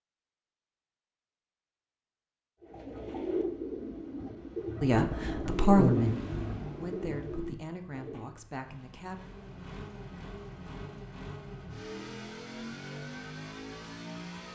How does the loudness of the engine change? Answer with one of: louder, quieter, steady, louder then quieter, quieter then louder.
quieter then louder.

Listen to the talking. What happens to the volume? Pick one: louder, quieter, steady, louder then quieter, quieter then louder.
quieter.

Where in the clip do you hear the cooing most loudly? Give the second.
6 s.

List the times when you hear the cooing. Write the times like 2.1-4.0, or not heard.
2.6-8.3.